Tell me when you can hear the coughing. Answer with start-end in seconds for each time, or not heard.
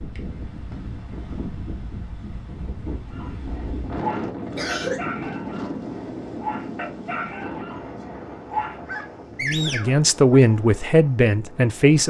4.5-5.0.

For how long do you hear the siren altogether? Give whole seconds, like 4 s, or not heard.
not heard.